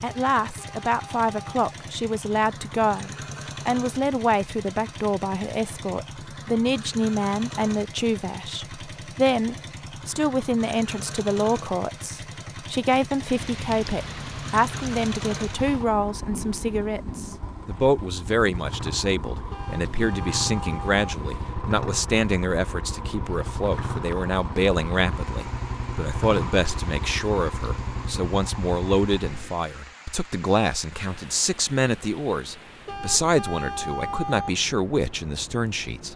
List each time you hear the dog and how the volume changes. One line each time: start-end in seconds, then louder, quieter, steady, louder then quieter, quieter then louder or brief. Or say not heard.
not heard.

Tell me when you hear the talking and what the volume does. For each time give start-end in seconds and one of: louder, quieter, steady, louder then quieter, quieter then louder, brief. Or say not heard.
0.0-36.1 steady.